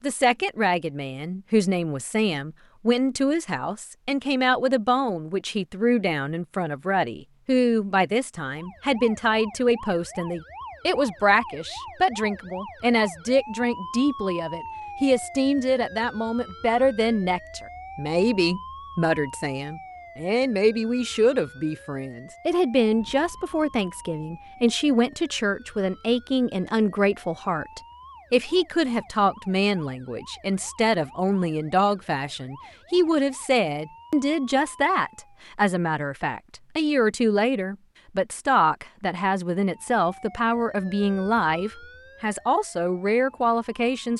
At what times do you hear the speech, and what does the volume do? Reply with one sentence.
You can hear the speech from 0.0 to 44.1 s, at a steady volume.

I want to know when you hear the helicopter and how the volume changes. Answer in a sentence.
You can't hear the helicopter here.